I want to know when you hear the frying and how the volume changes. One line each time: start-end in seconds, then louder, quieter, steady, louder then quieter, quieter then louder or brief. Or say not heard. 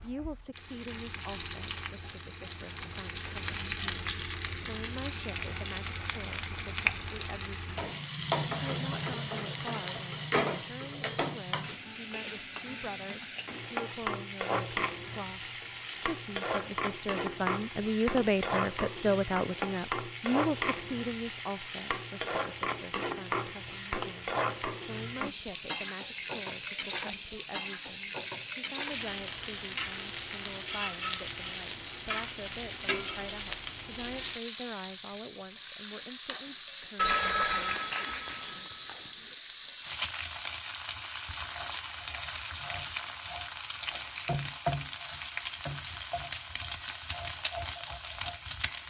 0.0-48.8 steady.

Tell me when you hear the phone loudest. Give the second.
37 s.